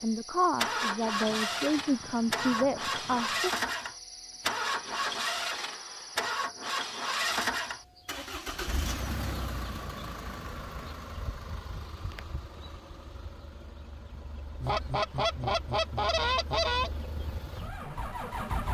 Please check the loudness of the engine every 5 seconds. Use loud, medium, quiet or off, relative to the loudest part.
loud, loud, quiet, medium.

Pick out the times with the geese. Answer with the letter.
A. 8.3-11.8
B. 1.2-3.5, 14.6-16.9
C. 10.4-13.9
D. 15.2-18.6
B.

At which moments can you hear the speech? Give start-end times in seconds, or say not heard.
0.0-3.5.